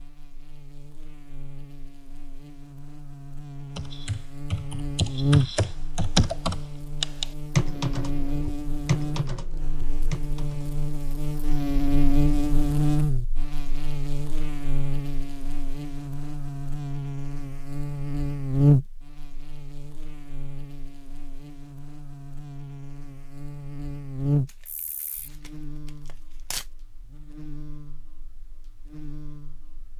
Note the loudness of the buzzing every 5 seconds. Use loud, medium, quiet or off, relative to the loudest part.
quiet, loud, loud, loud, medium, quiet.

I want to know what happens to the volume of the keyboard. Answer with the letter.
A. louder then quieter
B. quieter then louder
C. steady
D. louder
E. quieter
A.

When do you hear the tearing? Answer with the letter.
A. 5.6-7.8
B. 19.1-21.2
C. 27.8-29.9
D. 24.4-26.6
D.